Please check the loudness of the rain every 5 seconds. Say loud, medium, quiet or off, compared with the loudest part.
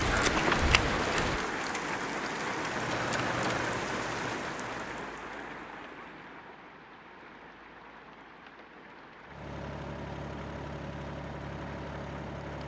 loud, quiet, quiet.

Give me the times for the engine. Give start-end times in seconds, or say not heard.
2.6-4.9, 9.2-12.6.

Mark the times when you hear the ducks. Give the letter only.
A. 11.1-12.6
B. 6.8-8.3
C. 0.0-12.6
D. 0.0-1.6
D.